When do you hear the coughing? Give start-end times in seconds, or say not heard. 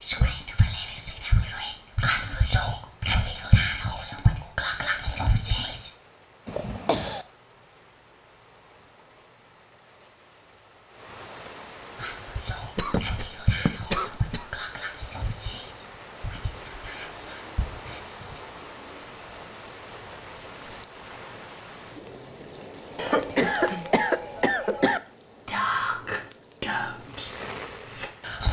6.5-7.2, 12.8-14.6, 22.9-25.0.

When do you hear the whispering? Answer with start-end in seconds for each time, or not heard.
0.0-5.9, 11.9-18.4, 25.4-28.4.